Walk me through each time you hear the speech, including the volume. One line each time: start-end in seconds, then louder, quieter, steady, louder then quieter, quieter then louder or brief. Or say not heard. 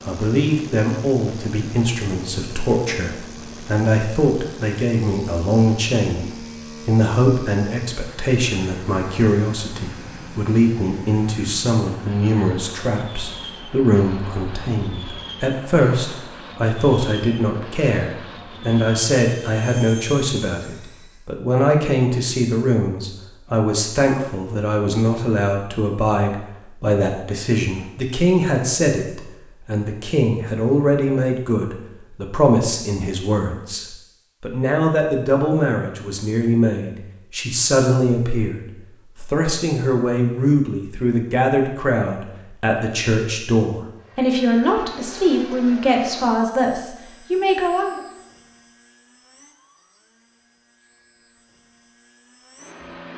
0.1-48.0 steady.